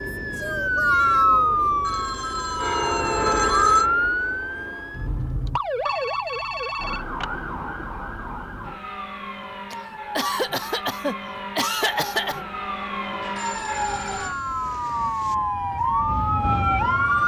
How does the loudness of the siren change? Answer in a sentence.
The loudness of the siren goes down, then up.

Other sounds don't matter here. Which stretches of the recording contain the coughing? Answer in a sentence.
The coughing can be heard from 9.7 to 12.4 s.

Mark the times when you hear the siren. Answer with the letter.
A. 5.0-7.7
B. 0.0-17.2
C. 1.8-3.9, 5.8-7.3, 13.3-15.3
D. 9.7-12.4
B.